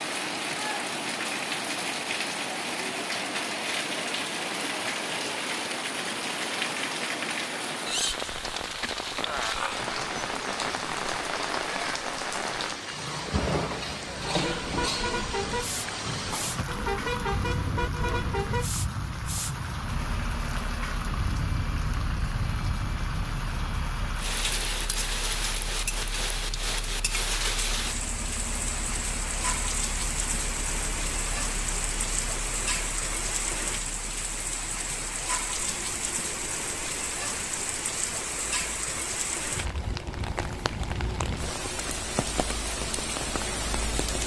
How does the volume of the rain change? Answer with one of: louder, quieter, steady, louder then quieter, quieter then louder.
steady.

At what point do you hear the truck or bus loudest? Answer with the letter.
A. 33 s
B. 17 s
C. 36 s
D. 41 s
B.